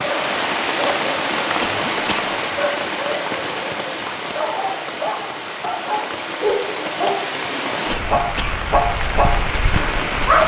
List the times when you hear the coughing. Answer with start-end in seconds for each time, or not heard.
1.6-2.4, 7.8-8.7.